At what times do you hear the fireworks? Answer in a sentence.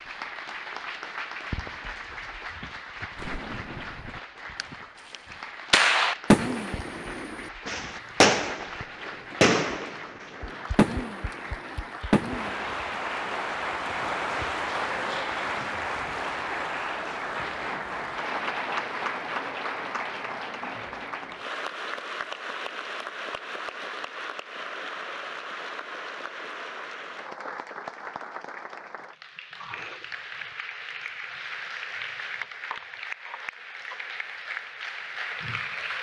The fireworks can be heard from 3.1 to 12.8 s.